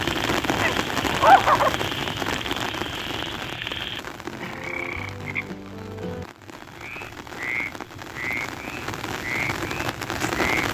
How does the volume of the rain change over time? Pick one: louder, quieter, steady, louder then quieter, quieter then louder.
quieter then louder.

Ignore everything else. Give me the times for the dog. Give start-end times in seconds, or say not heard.
0.5-1.8.